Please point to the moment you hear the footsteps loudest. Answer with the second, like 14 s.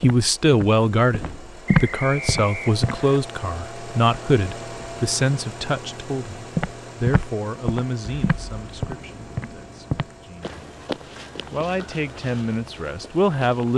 2 s.